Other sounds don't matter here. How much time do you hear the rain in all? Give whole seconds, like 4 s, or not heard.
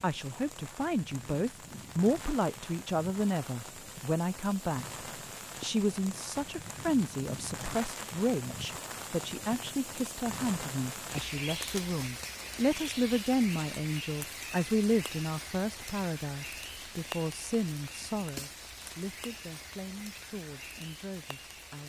22 s.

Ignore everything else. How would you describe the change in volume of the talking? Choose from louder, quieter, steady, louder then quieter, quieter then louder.
quieter.